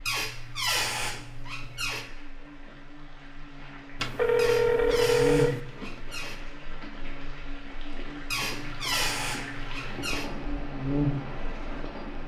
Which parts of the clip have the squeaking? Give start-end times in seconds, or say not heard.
0.1-2.1, 4.3-6.5, 8.3-10.3.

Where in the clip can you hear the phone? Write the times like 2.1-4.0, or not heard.
4.0-5.6.